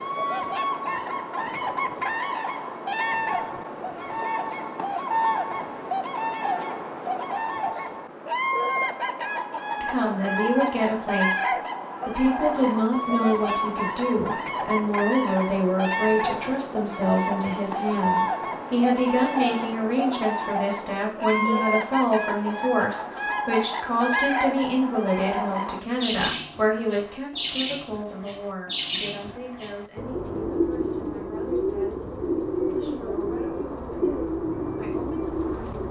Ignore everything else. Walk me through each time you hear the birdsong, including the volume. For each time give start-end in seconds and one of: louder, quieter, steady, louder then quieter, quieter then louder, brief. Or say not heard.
0.0-35.8 steady.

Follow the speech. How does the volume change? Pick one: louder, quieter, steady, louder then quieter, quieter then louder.
quieter.